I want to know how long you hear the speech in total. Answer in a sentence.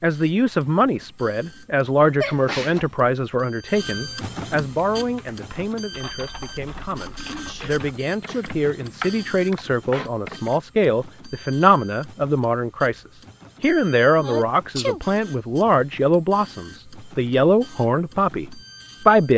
The speech can be heard for 19 seconds in total.